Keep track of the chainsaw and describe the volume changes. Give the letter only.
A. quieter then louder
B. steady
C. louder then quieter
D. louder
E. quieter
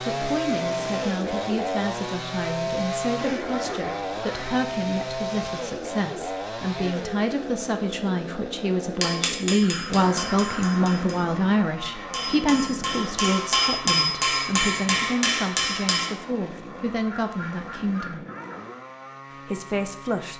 E.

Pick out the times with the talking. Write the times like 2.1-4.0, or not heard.
0.1-18.2, 19.4-20.3.